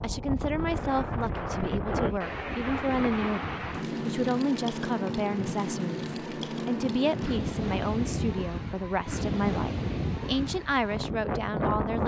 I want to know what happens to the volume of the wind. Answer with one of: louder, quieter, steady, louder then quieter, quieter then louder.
steady.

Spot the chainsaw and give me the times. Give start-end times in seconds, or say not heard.
not heard.